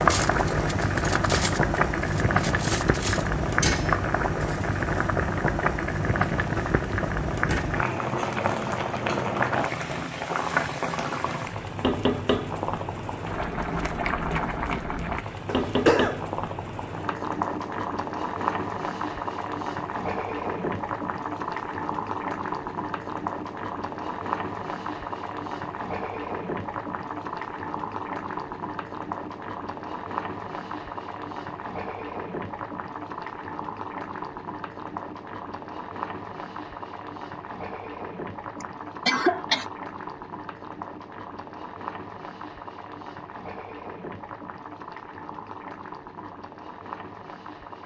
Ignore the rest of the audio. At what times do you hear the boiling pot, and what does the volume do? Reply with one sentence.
You can hear the boiling pot from 0.0 to 47.8 s, getting quieter.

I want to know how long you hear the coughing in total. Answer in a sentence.
The coughing can be heard for 2 seconds in total.